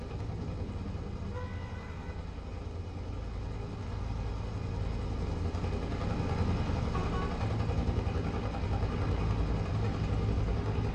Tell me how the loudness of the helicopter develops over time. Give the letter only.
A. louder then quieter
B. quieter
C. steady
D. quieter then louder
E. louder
E.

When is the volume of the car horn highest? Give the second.
7 s.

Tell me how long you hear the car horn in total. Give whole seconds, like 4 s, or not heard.
3 s.